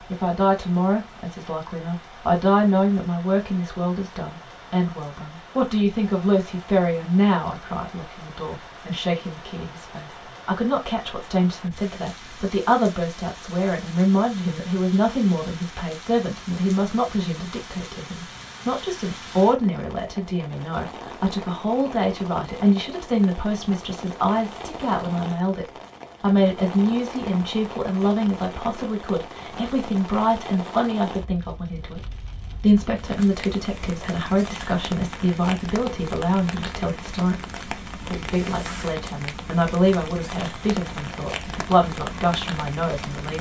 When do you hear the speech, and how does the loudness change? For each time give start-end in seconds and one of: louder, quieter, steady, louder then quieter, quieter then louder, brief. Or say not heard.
0.0-43.3 steady.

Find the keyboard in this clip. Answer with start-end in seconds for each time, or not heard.
not heard.